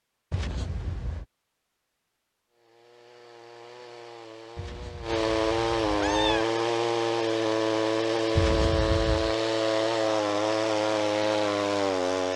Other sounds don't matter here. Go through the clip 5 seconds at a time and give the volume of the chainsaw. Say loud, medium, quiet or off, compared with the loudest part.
quiet, loud, loud.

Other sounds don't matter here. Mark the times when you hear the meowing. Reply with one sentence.
The meowing can be heard from 0.3 to 1.2 s, from 4.5 to 6.5 s and from 8.3 to 9.3 s.